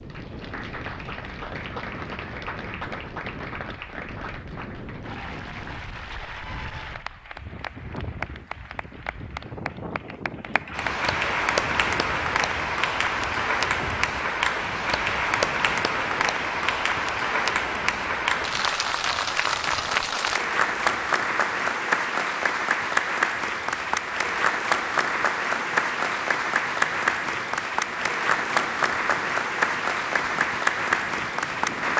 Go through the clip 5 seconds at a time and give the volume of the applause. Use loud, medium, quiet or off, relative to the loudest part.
quiet, quiet, loud, loud, loud, loud, loud.